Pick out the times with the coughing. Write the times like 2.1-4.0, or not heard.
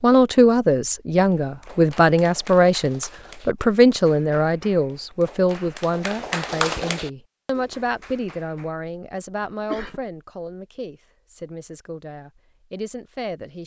9.4-10.1.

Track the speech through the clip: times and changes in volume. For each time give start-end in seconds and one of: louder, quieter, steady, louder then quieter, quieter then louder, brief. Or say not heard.
0.0-13.6 quieter.